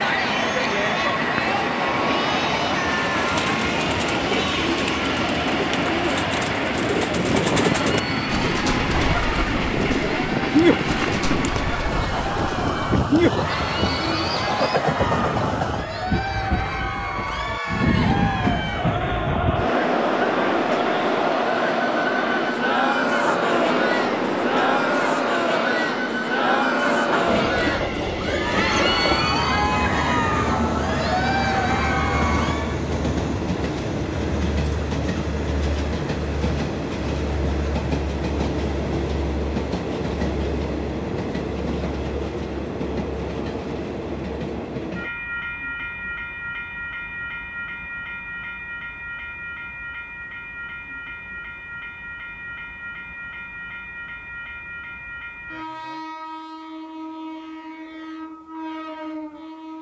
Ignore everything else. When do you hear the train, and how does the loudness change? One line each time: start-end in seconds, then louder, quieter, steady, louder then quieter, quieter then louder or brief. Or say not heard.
0.0-59.7 quieter.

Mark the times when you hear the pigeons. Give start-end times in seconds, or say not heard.
3.1-14.9.